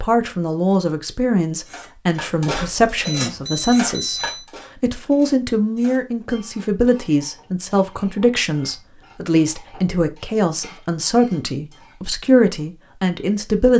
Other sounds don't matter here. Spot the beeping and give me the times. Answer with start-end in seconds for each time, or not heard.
3.0-4.5.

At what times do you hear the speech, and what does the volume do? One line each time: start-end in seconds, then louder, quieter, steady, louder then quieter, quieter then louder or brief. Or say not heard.
0.0-13.7 steady.